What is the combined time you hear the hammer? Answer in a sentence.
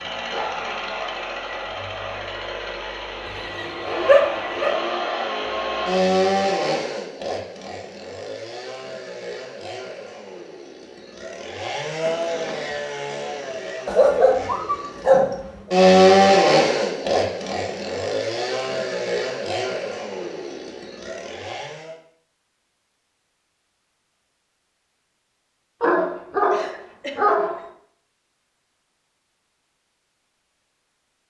The hammer can't be heard in this clip.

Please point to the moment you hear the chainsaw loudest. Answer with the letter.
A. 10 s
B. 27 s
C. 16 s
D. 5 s
C.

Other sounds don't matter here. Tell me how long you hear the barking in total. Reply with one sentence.
The barking can be heard for 5 seconds in total.